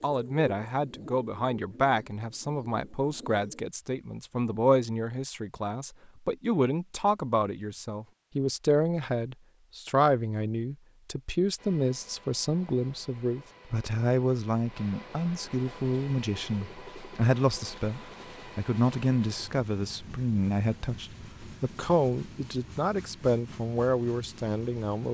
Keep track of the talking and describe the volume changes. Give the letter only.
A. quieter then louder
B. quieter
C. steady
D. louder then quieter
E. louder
C.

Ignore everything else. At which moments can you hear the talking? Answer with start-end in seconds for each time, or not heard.
0.0-25.1.